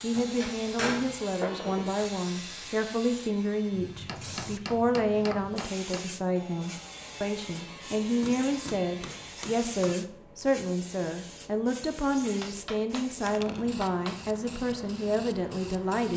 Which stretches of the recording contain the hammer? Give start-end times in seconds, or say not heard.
0.1-1.9, 4.0-6.0, 8.2-9.9, 12.4-13.1, 13.8-14.2.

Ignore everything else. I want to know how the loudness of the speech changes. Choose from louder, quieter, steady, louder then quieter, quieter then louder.
steady.